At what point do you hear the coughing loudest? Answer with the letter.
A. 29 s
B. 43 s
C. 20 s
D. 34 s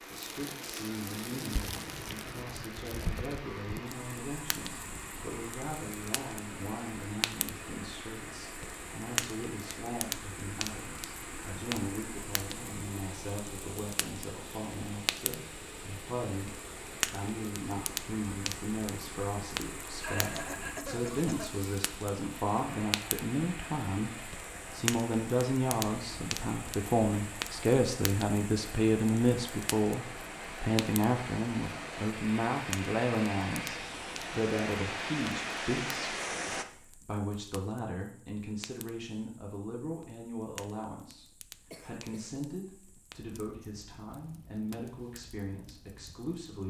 C.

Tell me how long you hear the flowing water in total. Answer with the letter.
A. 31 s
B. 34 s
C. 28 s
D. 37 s
D.